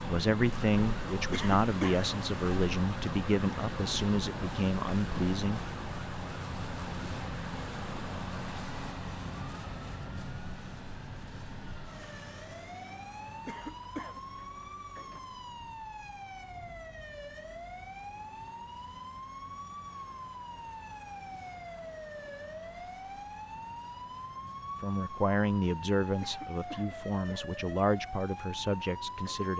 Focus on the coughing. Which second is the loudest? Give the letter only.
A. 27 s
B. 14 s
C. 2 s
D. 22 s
C.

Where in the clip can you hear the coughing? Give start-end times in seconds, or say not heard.
1.3-2.1, 13.4-14.2, 26.2-27.6.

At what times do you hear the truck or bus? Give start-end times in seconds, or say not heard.
0.0-29.5.